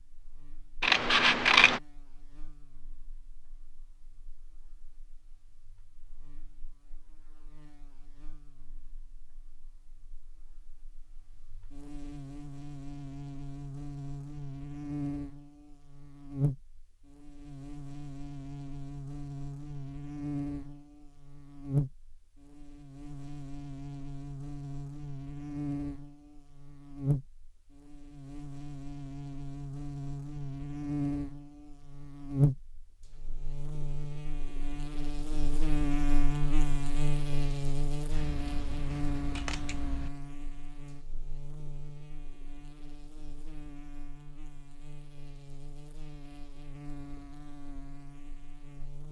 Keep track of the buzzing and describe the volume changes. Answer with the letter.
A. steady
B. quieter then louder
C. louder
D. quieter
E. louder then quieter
E.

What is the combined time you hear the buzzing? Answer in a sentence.
The buzzing can be heard for 49 seconds in total.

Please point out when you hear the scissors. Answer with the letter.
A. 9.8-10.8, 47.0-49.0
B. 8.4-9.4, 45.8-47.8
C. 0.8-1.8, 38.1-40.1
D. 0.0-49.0
C.